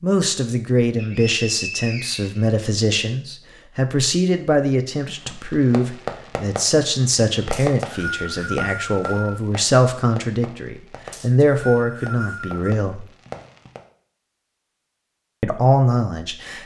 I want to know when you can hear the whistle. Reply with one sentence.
The whistle can be heard from 0.9 to 2.5 s, from 7.5 to 9.4 s and from 11.1 to 12.8 s.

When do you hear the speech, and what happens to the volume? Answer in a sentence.
You can hear the speech from 0.0 to 13.1 s, at a steady volume; and briefly from 15.4 to 16.6 s.